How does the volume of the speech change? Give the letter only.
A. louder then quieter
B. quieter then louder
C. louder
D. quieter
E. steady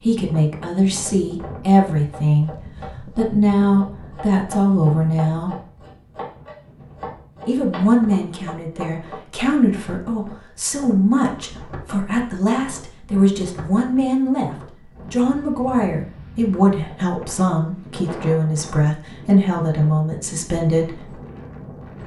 E.